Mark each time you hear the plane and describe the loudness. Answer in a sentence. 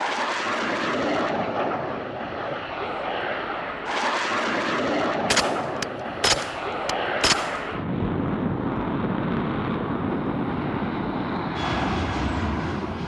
You can hear the plane from 0.0 to 13.0 s, at a steady volume.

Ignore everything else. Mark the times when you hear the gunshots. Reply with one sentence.
You can hear the gunshots from 5.3 to 7.6 s.